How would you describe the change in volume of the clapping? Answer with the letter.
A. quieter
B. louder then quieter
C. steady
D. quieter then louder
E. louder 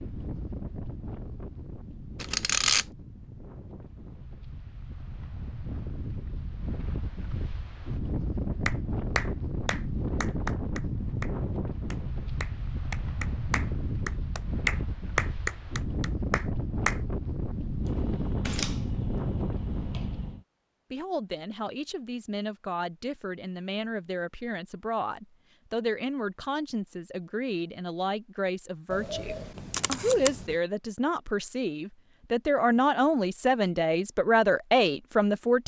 D.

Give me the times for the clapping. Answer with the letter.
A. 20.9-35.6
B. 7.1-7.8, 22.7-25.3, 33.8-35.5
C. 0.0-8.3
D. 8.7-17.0
D.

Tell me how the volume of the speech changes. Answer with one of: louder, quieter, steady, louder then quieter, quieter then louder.
louder.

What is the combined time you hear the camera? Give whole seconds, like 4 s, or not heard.
5 s.